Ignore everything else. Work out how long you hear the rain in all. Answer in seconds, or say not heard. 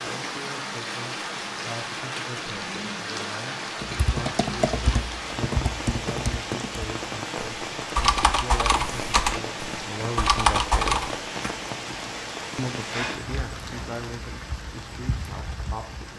16 s.